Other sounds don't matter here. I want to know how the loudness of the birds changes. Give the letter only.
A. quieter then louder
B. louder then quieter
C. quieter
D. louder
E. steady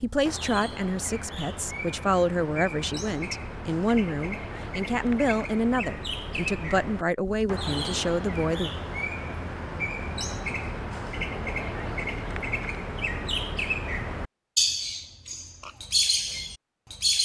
D.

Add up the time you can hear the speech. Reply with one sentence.
The speech can be heard for 9 seconds in total.